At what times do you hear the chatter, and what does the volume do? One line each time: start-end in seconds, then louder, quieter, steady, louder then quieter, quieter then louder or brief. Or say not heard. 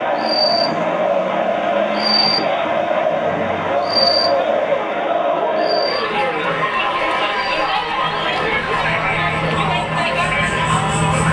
0.0-11.2 steady.